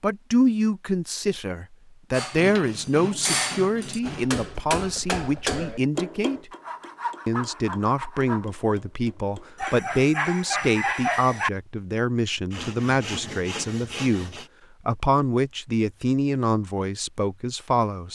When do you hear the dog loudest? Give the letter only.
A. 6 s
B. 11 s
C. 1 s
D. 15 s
B.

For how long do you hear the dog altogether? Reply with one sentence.
The dog can be heard for 2 seconds in total.